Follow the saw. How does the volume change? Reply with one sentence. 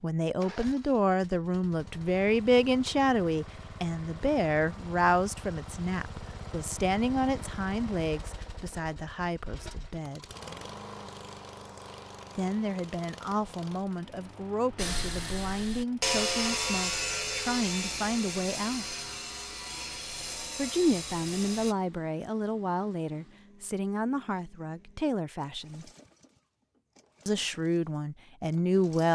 The volume of the saw goes down.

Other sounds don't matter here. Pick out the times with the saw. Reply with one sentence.
You can hear the saw from 14.8 to 21.8 s.